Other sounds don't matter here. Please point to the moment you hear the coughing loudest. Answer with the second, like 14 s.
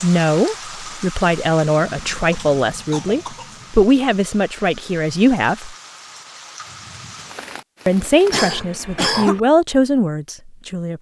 9 s.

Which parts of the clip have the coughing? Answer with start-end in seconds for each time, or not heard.
2.3-3.5, 8.3-9.4.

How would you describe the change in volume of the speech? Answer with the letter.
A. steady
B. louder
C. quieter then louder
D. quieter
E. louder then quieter
A.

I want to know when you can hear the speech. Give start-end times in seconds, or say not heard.
0.0-5.8, 7.8-10.9.